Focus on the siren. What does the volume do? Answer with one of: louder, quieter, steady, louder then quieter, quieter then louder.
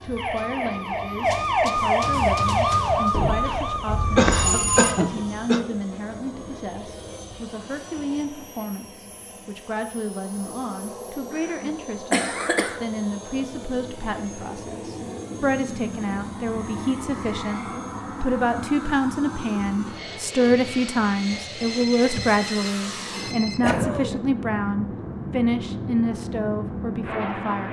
louder then quieter.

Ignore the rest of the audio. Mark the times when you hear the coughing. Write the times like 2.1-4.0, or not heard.
4.2-5.6, 11.3-12.8, 23.6-24.2.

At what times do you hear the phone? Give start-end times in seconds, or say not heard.
3.1-5.0, 21.6-23.6.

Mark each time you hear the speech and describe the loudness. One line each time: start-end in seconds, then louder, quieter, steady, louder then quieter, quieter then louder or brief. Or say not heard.
0.0-27.6 louder.